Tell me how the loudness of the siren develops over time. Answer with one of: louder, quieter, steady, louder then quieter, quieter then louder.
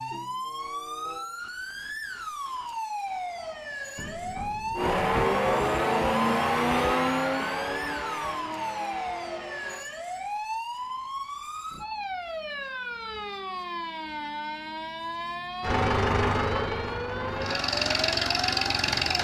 steady.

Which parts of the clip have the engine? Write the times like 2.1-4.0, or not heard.
4.8-9.8, 15.6-19.1.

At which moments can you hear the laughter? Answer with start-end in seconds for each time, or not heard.
not heard.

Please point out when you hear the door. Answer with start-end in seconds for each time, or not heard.
4.0-5.2.